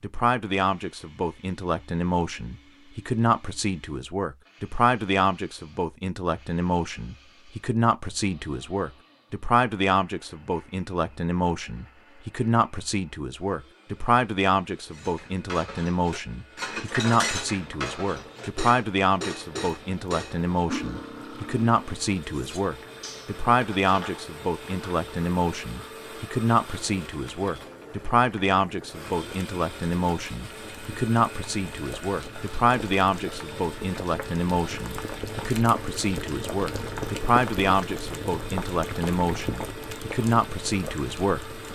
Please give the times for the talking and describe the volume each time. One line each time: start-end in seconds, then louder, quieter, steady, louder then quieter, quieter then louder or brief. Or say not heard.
0.0-41.5 steady.